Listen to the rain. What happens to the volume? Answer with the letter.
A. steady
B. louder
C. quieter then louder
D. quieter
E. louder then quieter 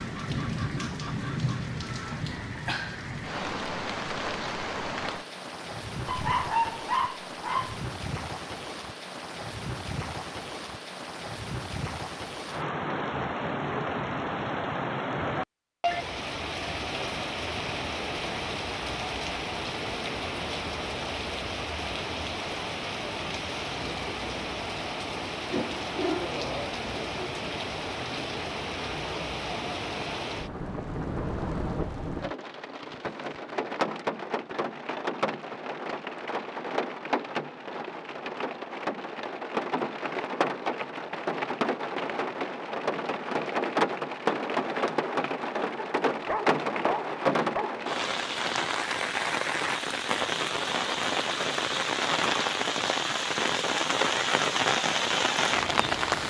B.